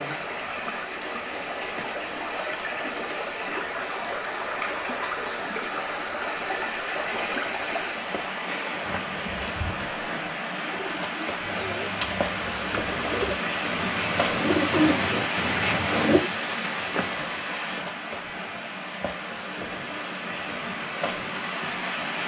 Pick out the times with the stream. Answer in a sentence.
You can hear the stream from 0.0 to 22.2 s.